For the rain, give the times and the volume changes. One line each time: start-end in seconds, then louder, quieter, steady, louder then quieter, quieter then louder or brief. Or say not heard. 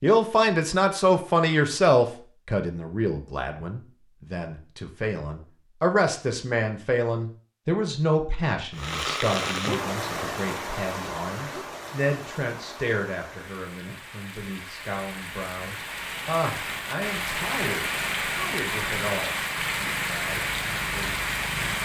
8.7-21.8 quieter then louder.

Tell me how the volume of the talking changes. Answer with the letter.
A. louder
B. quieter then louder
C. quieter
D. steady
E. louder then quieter
C.